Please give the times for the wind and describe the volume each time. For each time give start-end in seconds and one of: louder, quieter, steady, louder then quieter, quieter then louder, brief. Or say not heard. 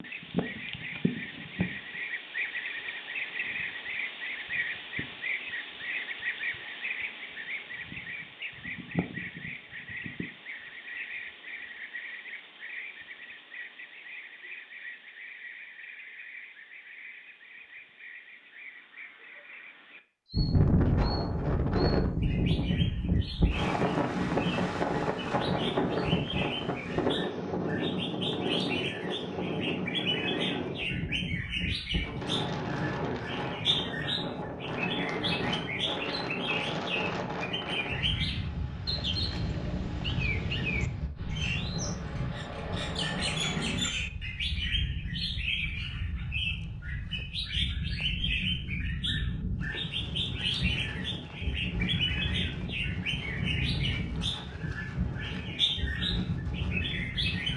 20.3-57.5 quieter.